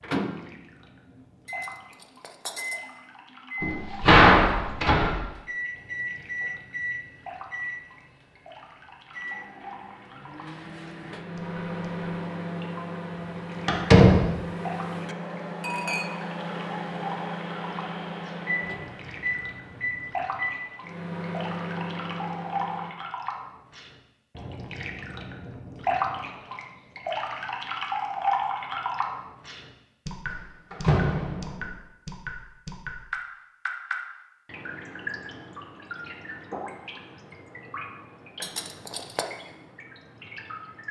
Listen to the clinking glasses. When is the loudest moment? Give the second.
16 s.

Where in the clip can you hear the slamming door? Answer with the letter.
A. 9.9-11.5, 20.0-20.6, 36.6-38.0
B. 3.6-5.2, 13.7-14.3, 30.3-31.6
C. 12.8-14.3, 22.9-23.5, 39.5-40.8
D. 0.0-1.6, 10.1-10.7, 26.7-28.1
B.